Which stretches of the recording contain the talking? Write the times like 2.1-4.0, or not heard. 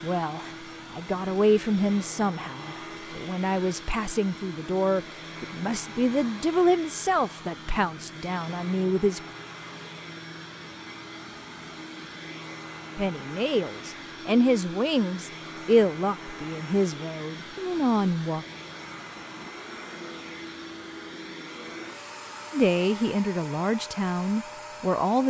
0.0-9.2, 12.9-18.4, 22.5-25.2.